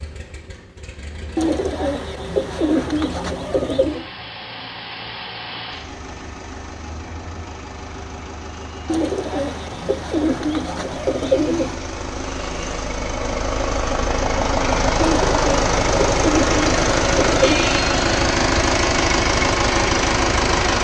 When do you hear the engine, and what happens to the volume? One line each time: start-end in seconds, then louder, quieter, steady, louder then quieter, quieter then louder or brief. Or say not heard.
0.0-20.7 louder.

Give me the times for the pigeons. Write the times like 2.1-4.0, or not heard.
1.4-4.0, 8.8-11.8, 15.0-17.6.